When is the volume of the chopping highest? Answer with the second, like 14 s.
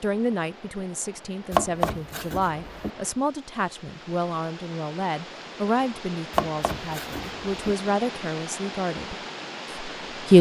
2 s.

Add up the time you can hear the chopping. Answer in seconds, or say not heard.
3 s.